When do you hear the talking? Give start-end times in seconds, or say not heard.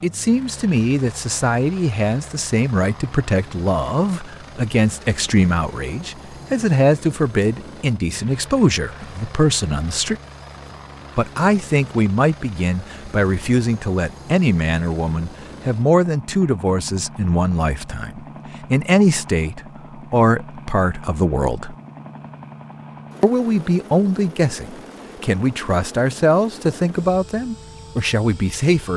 0.0-10.2, 11.2-21.8, 23.2-28.9.